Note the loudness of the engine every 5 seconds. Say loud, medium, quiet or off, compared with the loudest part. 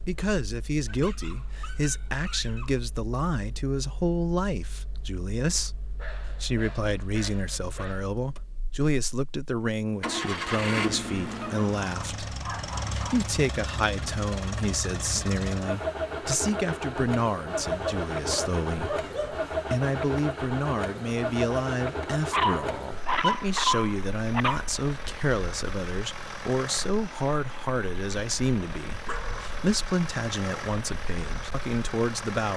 quiet, quiet, loud, loud, loud, medium, medium.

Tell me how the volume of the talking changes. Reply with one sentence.
The loudness of the talking stays about the same.